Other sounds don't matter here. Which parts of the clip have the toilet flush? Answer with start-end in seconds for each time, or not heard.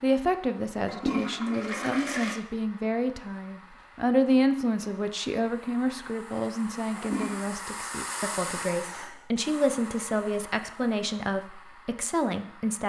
0.8-2.4, 6.8-7.5.